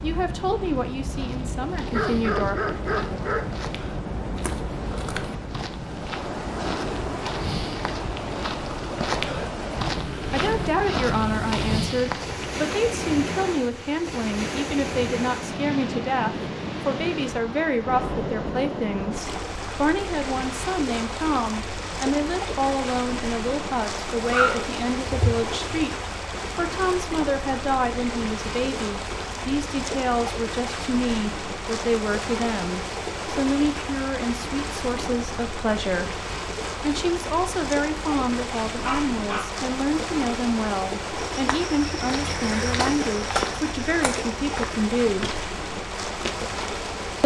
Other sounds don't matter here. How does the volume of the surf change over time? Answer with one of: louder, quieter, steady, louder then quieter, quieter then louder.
steady.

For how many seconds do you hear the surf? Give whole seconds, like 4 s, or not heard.
47 s.